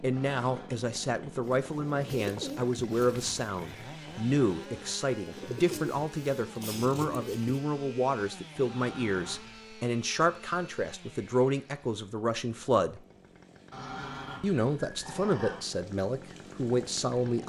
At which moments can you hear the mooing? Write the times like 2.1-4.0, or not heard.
not heard.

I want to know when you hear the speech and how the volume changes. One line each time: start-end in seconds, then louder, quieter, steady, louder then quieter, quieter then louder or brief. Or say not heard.
0.0-13.0 steady
14.4-17.4 brief.